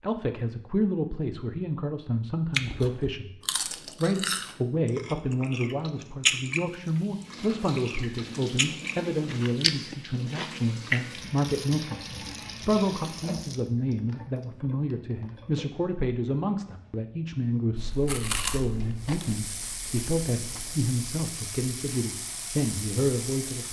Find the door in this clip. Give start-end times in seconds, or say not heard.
not heard.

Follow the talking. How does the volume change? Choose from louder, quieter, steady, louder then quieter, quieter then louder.
steady.